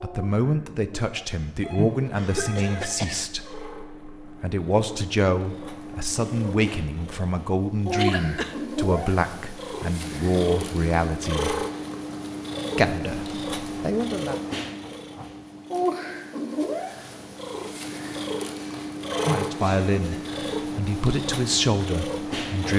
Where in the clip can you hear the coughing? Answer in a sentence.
The coughing can be heard from 2.1 to 3.2 s, from 8.0 to 8.5 s and from 19.6 to 20.4 s.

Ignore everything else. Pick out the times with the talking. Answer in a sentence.
The talking can be heard from 0.0 to 11.6 s, from 12.8 to 14.3 s and from 19.2 to 22.7 s.